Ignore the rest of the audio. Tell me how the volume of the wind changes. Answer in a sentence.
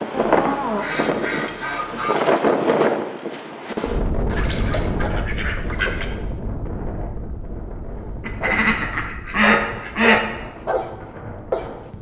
The loudness of the wind goes down.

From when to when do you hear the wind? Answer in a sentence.
You can hear the wind from 0.0 to 11.9 s.